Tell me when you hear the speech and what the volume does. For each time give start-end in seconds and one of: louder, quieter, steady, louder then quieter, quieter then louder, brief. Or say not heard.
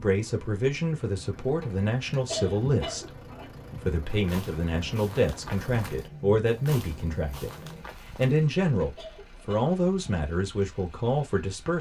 0.0-11.7 steady.